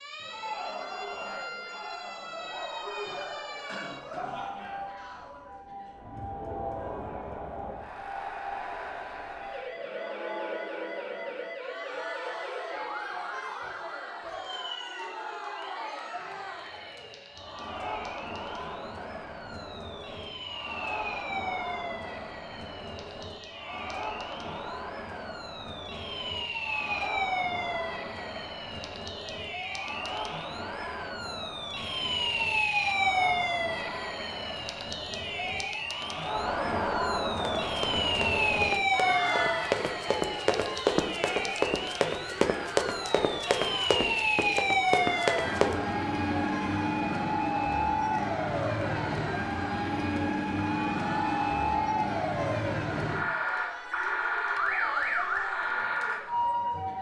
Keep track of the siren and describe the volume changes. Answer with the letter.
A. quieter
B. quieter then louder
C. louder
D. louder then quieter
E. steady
C.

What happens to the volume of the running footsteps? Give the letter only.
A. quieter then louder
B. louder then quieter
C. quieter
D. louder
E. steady
D.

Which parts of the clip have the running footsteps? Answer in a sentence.
You can hear the running footsteps from 37.4 to 45.8 s.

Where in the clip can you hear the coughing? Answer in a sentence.
You can hear the coughing from 3.5 to 4.7 s.